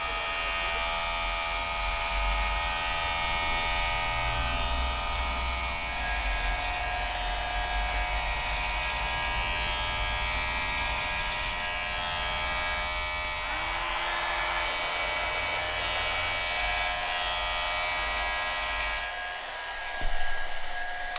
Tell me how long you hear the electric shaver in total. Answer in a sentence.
You can hear the electric shaver for 21 seconds altogether.